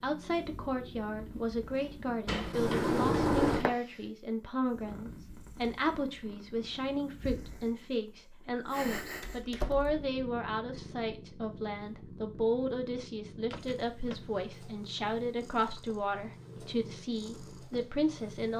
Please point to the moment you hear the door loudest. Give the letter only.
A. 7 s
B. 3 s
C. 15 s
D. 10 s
B.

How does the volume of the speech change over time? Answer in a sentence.
The loudness of the speech stays about the same.